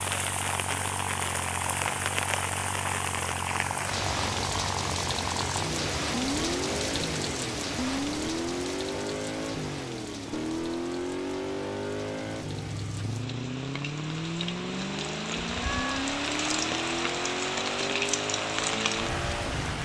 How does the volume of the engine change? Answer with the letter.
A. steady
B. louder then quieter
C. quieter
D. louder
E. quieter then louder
A.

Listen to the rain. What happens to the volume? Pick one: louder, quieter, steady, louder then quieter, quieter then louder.
quieter then louder.